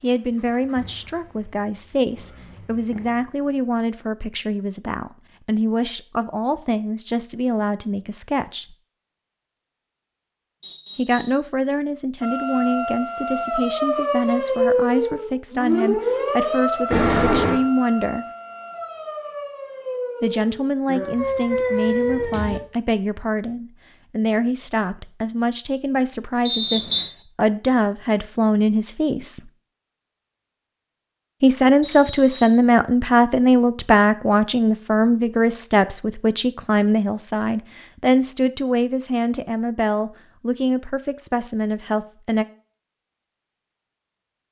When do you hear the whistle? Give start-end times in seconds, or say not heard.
10.6-11.4, 26.4-27.1, 31.8-32.6.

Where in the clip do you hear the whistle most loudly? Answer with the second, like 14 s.
27 s.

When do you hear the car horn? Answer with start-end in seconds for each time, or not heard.
16.9-17.6.